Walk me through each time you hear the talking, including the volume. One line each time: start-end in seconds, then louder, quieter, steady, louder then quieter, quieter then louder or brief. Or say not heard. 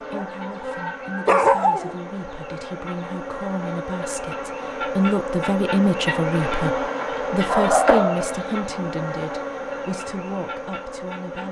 0.0-11.4 louder then quieter.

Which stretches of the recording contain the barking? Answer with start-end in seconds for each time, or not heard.
1.2-1.9, 7.5-8.9.